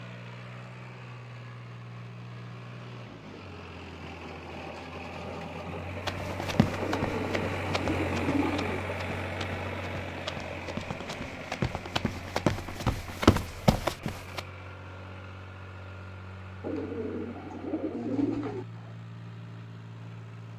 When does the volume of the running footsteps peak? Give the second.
13 s.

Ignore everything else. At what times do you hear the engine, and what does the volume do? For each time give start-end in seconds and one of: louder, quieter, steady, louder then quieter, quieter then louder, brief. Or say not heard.
0.0-20.5 louder then quieter.